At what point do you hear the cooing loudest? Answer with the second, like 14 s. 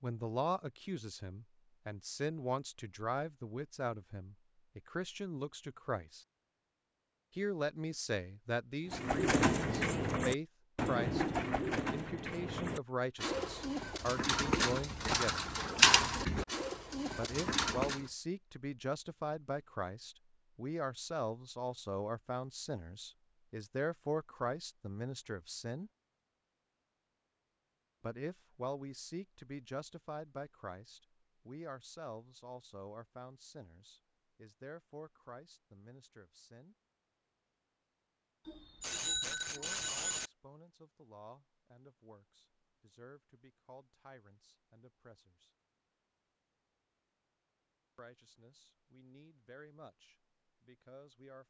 16 s.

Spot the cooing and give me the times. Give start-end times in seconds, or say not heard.
8.9-18.1.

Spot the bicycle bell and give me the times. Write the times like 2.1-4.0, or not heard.
38.5-40.3.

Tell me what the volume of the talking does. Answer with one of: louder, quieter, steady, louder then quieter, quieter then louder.
quieter.